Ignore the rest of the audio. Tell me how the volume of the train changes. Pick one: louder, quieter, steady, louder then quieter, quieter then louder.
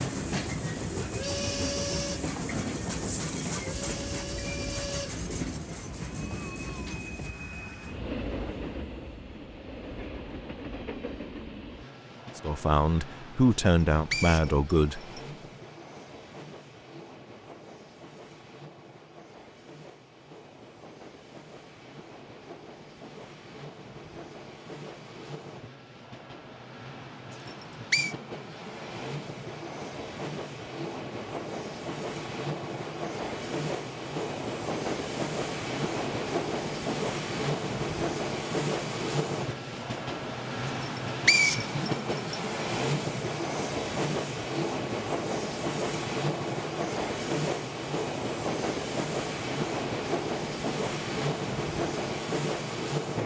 quieter then louder.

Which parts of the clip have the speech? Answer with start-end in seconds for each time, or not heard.
12.3-15.1.